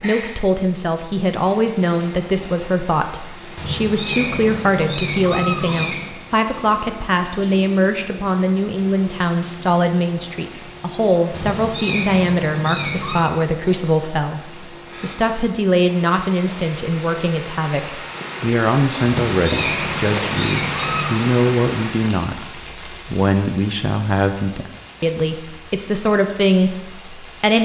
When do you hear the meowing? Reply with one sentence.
You can hear the meowing from 3.5 to 6.1 s, from 11.3 to 13.3 s and from 19.1 to 21.2 s.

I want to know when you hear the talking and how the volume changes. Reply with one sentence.
The talking can be heard from 0.0 to 27.5 s, at a steady volume.